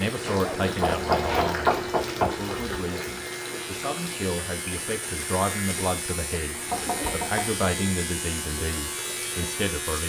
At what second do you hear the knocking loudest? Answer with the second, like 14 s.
2 s.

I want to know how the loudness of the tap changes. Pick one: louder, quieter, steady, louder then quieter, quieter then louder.
quieter.